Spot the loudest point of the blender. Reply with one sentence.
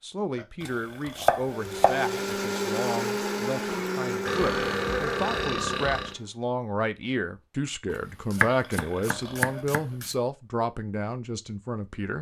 The loudest moment of the blender is at 3 seconds.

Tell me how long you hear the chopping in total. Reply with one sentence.
You can hear the chopping for 4 seconds altogether.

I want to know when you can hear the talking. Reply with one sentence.
You can hear the talking from 0.0 to 12.1 s.